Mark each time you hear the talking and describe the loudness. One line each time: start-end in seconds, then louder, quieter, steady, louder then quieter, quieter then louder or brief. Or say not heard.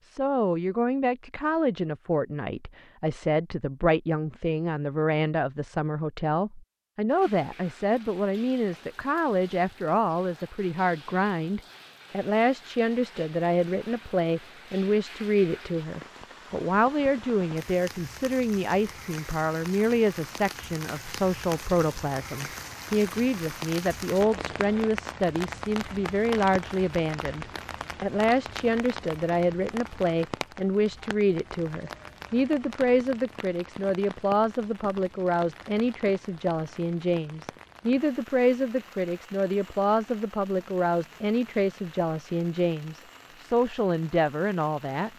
0.1-45.1 steady.